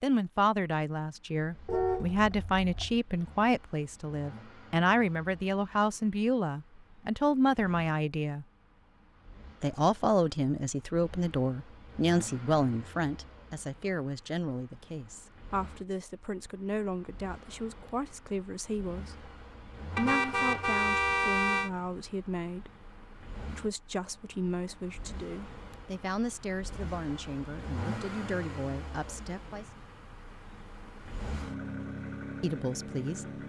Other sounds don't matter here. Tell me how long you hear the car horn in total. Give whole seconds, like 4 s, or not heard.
3 s.